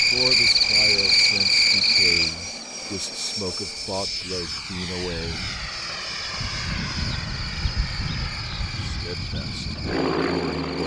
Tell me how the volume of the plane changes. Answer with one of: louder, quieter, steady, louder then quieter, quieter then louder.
louder.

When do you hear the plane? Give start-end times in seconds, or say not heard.
0.0-10.8.